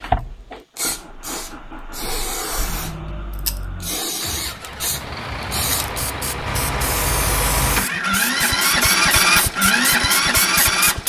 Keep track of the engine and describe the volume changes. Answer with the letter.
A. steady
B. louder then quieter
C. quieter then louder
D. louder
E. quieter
D.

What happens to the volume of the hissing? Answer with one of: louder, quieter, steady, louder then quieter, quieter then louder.
steady.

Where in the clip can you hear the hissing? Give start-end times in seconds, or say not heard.
0.0-11.0.